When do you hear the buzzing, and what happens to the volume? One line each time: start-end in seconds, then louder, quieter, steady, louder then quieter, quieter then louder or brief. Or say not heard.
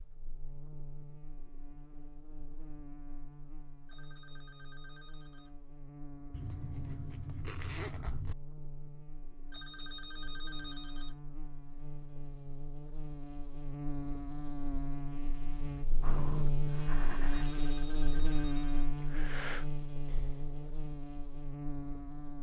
0.0-22.3 louder.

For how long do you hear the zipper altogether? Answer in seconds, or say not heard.
2 s.